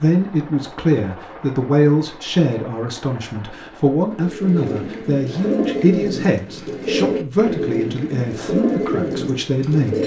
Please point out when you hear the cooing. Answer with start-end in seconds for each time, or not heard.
4.1-10.0.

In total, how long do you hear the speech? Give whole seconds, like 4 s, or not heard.
10 s.